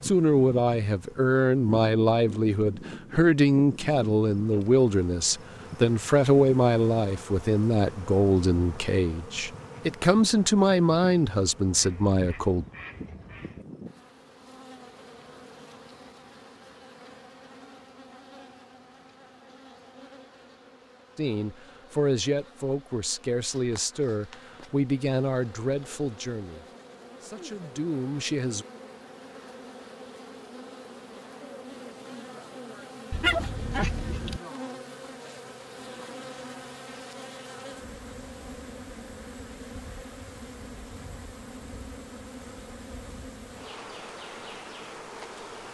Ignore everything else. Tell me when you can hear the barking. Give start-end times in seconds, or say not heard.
33.1-34.4.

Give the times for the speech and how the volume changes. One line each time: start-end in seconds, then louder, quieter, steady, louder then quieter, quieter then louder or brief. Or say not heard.
0.0-12.7 steady
21.1-28.6 quieter.